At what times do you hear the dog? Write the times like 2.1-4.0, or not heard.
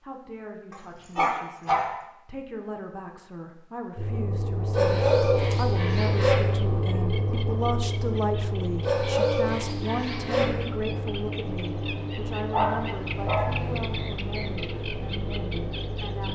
0.7-2.0, 4.7-6.3, 8.8-10.4, 12.5-13.7.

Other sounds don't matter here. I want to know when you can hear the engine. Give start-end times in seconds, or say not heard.
4.0-16.3.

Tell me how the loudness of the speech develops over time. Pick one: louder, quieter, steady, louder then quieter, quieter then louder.
louder then quieter.